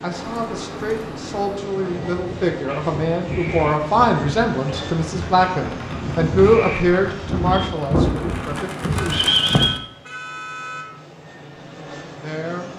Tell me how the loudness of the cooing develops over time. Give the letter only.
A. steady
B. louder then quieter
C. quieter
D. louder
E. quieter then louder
D.